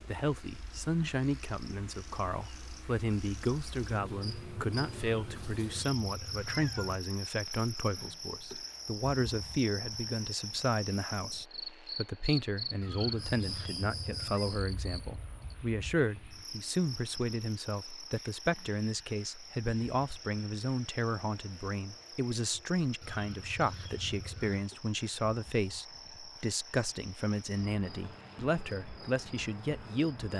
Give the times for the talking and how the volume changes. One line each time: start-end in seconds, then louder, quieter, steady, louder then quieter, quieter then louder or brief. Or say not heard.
0.1-30.3 steady.